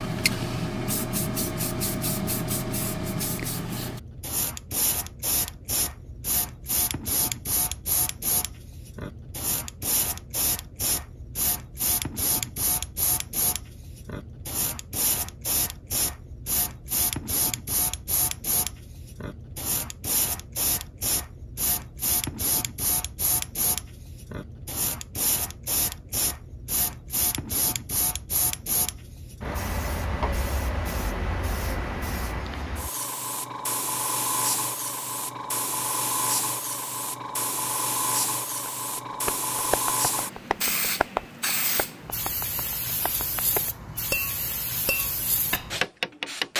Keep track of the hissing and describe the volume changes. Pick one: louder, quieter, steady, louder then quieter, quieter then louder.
steady.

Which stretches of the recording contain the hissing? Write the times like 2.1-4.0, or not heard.
0.0-46.5.